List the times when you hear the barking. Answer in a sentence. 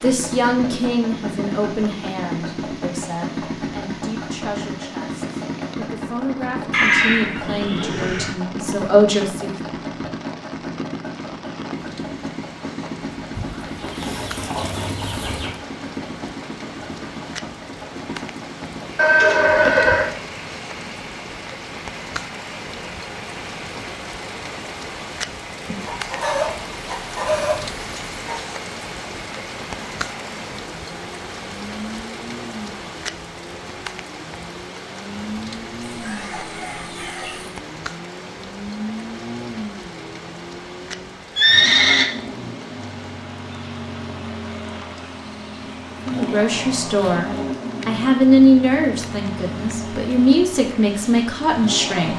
You can't hear the barking here.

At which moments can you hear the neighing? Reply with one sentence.
The neighing can be heard from 6.7 to 8.3 s, from 18.9 to 20.1 s and from 41.4 to 42.0 s.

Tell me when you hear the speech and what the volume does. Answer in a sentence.
You can hear the speech from 0.0 to 9.6 s, getting quieter then louder; and from 46.0 to 52.1 s, getting louder then quieter.